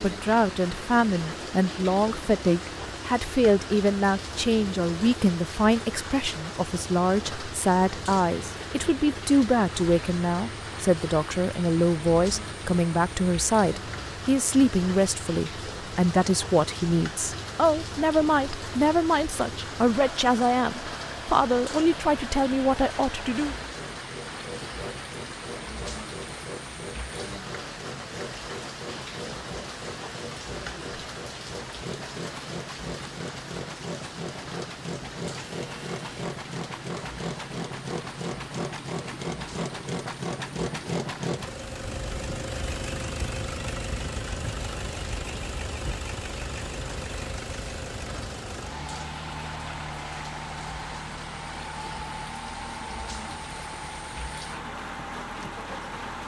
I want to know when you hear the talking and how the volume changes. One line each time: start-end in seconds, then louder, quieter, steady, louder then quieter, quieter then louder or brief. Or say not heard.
0.0-23.6 steady.